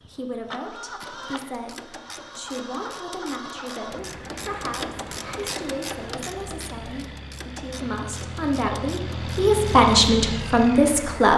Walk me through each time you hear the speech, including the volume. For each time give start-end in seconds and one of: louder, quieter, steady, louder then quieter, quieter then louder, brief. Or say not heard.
0.0-11.3 louder.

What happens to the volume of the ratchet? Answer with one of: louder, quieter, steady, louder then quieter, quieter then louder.
louder then quieter.